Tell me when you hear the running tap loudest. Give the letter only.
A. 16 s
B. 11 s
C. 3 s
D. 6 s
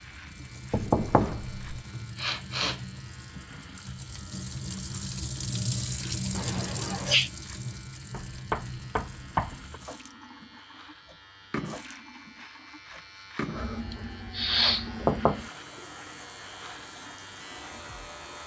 D.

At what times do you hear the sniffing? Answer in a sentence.
The sniffing can be heard from 2.1 to 2.8 s, from 6.3 to 7.3 s and from 13.9 to 14.9 s.